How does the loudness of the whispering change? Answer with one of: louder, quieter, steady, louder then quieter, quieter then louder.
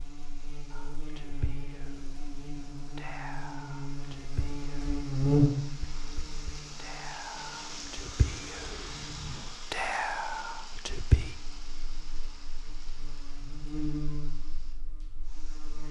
louder.